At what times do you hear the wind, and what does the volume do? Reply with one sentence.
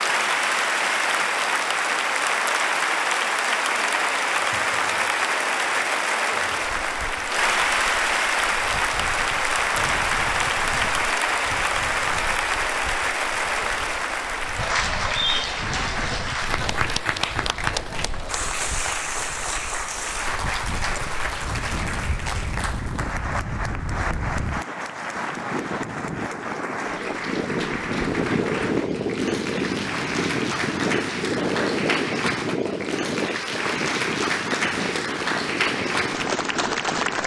The wind can be heard from 6.6 to 37.2 s, getting louder.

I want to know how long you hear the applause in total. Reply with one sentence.
The applause can be heard for 37 seconds in total.